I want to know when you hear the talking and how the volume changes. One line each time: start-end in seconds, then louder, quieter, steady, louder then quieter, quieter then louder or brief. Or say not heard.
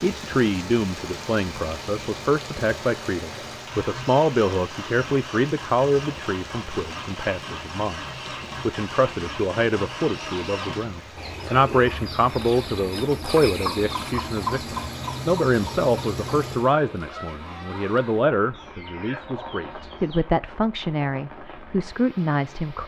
0.0-22.8 steady.